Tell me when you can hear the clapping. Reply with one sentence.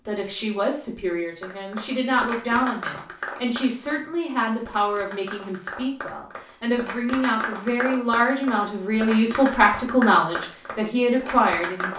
You can hear the clapping from 1.4 to 11.9 s.